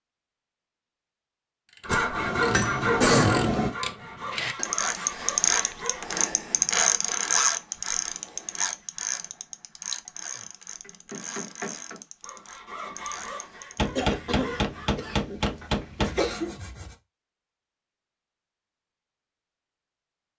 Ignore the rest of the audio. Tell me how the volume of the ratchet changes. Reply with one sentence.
The volume of the ratchet goes up, then down.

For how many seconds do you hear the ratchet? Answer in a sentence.
You can hear the ratchet for 12 seconds altogether.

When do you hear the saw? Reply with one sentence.
You can hear the saw from 1.8 to 6.2 s and from 12.2 to 16.9 s.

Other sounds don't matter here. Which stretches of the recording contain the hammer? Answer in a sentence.
You can hear the hammer from 2.1 to 3.8 s, from 10.4 to 12.0 s and from 13.8 to 16.1 s.